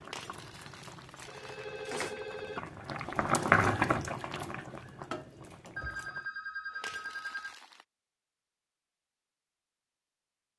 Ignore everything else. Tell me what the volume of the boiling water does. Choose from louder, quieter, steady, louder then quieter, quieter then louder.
louder then quieter.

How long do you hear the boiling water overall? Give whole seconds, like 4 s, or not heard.
6 s.